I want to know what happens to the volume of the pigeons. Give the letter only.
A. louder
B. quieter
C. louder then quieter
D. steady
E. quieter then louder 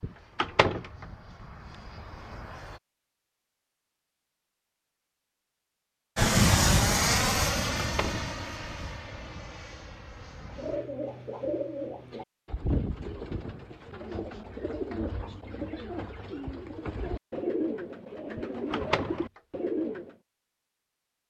D.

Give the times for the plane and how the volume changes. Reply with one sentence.
The plane can be heard briefly from 0.0 to 2.8 s; and from 6.2 to 10.8 s, getting quieter.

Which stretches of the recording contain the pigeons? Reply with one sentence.
The pigeons can be heard from 10.5 to 20.1 s.